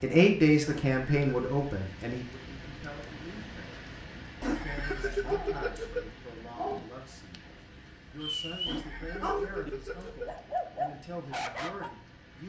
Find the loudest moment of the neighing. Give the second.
5 s.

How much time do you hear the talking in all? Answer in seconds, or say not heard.
11 s.